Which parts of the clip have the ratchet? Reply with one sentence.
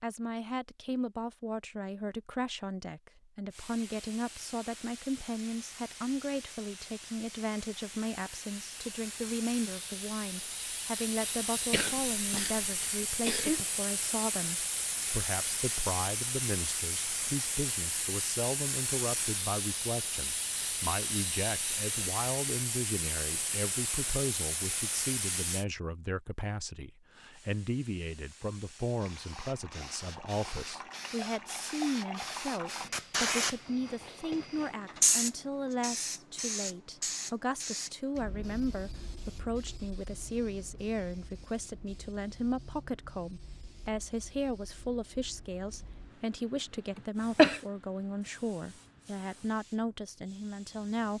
You can't hear the ratchet here.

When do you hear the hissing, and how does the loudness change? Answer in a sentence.
The hissing can be heard from 3.5 to 25.6 s, getting louder; and from 27.3 to 51.1 s, getting louder then quieter.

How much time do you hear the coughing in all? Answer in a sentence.
The coughing can be heard for 3 seconds in total.